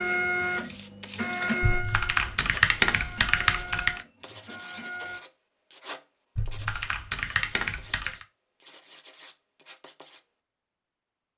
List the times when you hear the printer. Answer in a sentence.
The printer can be heard from 0.0 to 5.2 s.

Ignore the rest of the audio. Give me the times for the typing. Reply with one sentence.
The typing can be heard from 1.6 to 4.0 s and from 6.3 to 8.2 s.